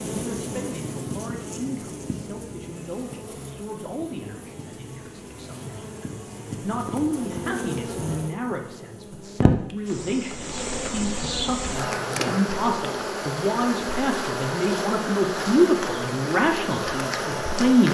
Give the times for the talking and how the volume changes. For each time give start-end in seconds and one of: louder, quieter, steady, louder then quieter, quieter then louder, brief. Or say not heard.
0.0-17.8 louder.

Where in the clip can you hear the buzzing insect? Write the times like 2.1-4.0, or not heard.
0.0-17.8.